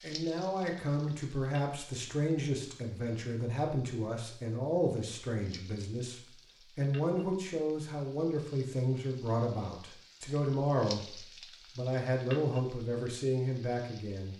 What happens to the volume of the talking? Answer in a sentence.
The volume of the talking stays about the same.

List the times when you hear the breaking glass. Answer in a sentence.
The breaking glass can't be heard in this clip.